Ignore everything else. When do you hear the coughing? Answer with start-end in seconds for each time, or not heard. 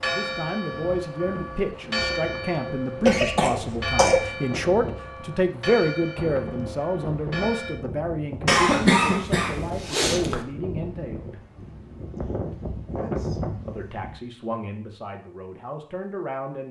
3.0-4.3, 8.4-10.4.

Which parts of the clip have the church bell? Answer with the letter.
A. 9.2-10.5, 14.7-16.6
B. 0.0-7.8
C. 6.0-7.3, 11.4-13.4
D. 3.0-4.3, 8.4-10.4
B.